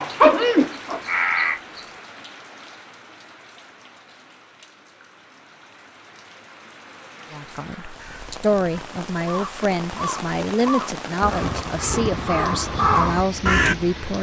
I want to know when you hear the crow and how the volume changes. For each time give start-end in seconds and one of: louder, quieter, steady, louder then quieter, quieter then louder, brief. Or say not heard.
0.0-1.8 brief
8.0-13.8 louder.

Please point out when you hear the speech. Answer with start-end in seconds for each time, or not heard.
7.3-14.1.